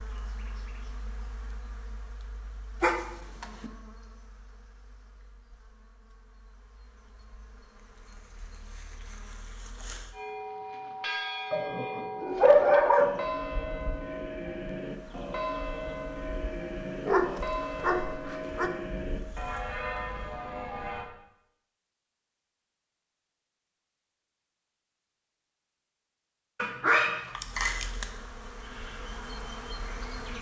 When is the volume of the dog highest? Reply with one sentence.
The volume of the dog peaks at 13 seconds.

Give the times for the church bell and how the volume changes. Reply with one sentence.
The church bell can be heard from 10.1 to 21.1 s, at a steady volume.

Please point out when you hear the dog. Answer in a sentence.
The dog can be heard from 2.8 to 3.7 s, from 11.5 to 13.1 s, from 17.1 to 18.7 s and from 26.6 to 27.9 s.